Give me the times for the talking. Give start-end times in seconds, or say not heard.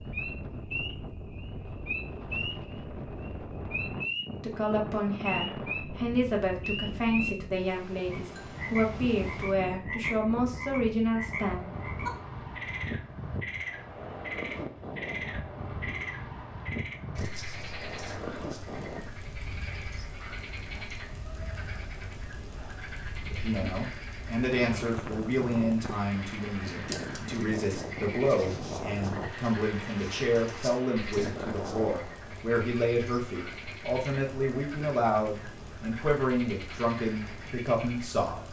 4.3-11.7, 23.2-38.4.